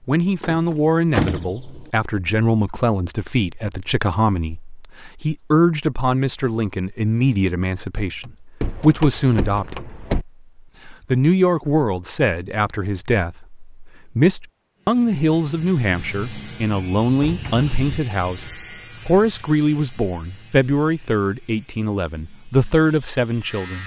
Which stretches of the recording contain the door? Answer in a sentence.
The door can be heard from 0.4 to 1.9 s, from 8.6 to 10.2 s and from 15.9 to 18.1 s.